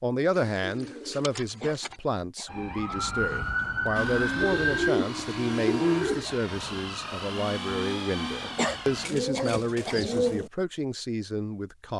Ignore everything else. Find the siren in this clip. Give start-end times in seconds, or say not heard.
2.5-4.9.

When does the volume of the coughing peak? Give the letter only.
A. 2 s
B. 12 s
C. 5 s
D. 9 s
D.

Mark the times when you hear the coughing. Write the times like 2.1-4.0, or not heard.
1.4-3.1, 8.4-10.0.